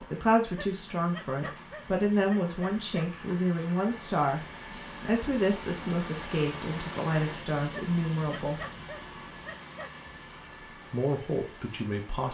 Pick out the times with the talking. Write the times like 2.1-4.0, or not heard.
0.0-8.6, 10.9-12.3.